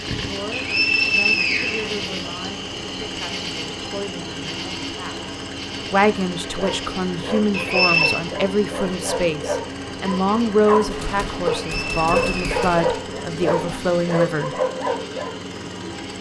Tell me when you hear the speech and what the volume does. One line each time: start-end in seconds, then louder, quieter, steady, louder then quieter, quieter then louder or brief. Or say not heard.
0.1-14.6 louder.